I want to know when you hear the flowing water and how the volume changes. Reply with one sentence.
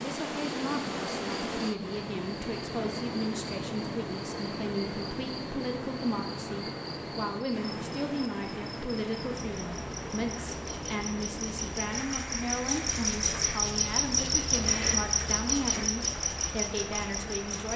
The flowing water can be heard from 0.0 to 17.7 s, getting quieter.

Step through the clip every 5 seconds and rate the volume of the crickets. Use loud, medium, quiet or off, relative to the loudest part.
quiet, quiet, loud, loud.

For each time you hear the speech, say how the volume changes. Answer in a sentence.
You can hear the speech from 0.0 to 17.7 s, at a steady volume.